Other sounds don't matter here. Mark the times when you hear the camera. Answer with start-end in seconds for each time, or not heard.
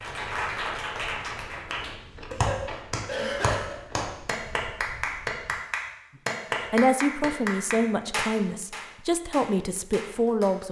not heard.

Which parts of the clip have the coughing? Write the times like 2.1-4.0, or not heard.
2.3-3.8.